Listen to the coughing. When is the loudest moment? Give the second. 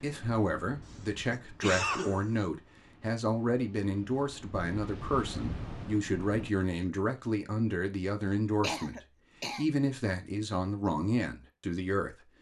2 s.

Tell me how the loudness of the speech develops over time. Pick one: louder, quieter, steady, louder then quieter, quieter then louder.
steady.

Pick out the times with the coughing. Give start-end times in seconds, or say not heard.
0.8-2.4, 8.6-9.7.